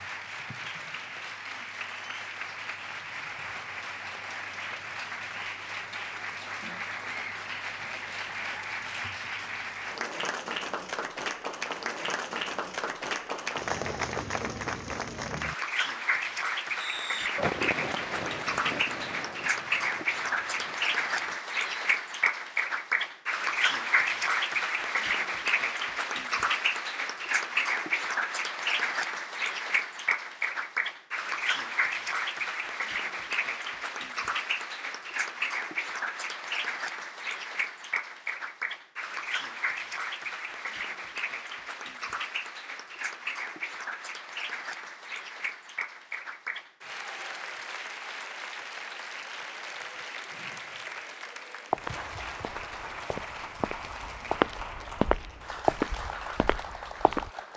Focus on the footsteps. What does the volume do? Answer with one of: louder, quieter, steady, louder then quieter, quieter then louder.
louder then quieter.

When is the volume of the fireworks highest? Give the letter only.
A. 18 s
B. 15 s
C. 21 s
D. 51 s
A.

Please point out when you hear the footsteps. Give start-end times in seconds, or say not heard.
51.7-57.3.